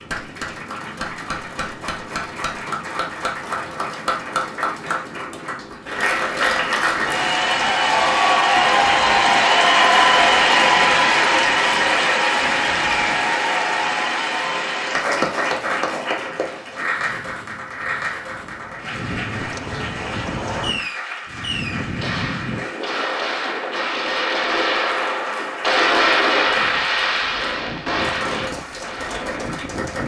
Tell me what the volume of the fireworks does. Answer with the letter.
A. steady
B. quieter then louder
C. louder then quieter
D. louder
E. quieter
C.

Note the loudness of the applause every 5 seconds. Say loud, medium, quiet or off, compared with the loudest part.
medium, loud, loud, medium, quiet, quiet.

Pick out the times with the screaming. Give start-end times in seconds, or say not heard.
not heard.